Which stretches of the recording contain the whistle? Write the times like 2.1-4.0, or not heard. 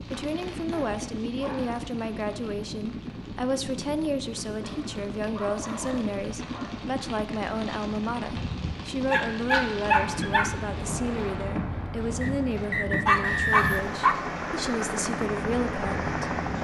12.2-13.9.